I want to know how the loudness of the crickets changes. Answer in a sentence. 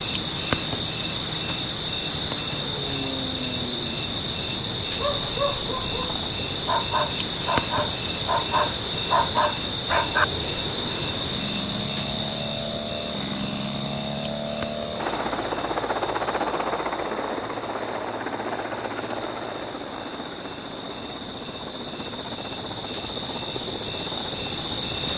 The volume of the crickets goes down, then up.